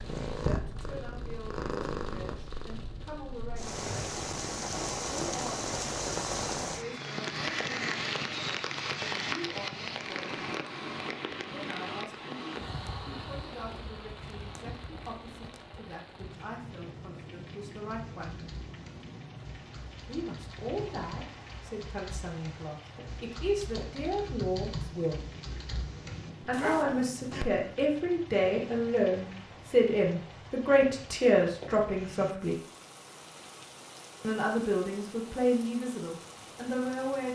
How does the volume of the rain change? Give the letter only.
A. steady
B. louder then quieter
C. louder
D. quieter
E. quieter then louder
D.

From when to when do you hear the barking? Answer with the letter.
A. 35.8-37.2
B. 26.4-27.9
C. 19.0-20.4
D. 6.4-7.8
B.